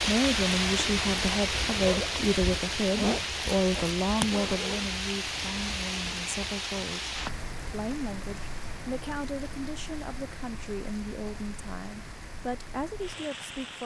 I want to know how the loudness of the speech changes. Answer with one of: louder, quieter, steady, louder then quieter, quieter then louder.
quieter.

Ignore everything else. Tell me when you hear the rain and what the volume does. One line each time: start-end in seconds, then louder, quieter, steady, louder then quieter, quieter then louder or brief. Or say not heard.
0.0-13.8 quieter.